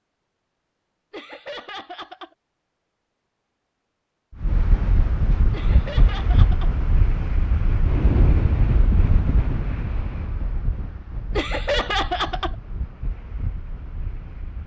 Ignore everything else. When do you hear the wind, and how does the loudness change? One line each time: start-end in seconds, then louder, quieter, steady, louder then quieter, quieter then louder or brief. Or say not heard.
4.4-14.6 quieter.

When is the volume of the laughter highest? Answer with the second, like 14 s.
12 s.